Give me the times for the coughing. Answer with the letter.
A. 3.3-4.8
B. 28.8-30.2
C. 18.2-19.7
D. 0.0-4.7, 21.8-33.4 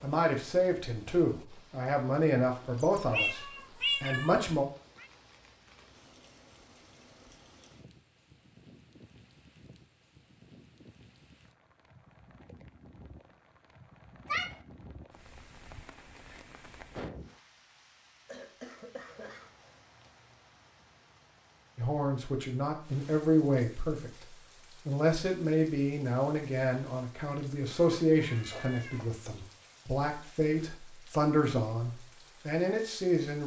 C.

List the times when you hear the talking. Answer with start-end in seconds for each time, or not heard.
0.0-4.7, 21.8-33.4.